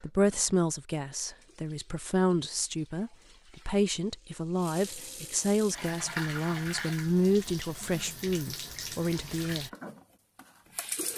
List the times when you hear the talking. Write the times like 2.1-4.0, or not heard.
0.0-9.7.